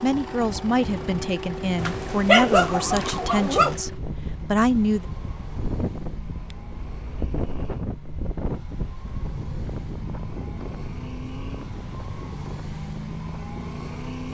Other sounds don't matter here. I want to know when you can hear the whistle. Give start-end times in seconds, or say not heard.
not heard.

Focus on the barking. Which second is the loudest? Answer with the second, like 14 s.
2 s.